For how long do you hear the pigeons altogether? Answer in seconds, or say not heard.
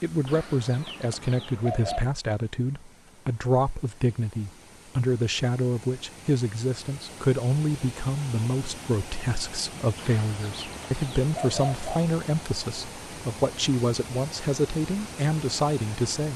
4 s.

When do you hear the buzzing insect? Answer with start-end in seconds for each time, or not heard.
not heard.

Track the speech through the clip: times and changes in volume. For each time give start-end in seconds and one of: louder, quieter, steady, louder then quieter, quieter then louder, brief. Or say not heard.
0.0-16.3 steady.